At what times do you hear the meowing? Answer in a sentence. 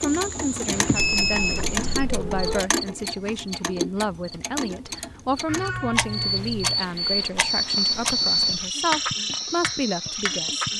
The meowing can be heard from 0.9 to 2.6 s and from 5.5 to 6.8 s.